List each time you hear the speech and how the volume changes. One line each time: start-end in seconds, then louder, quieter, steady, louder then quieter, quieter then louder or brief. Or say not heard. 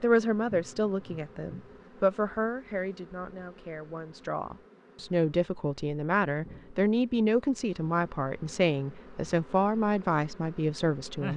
0.0-11.3 quieter then louder.